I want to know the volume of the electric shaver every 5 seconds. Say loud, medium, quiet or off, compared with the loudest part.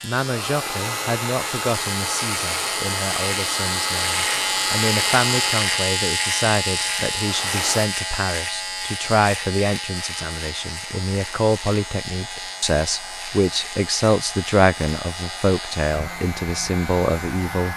loud, loud, medium, medium.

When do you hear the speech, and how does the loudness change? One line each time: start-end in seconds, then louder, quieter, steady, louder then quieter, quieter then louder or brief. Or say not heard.
0.0-17.7 louder.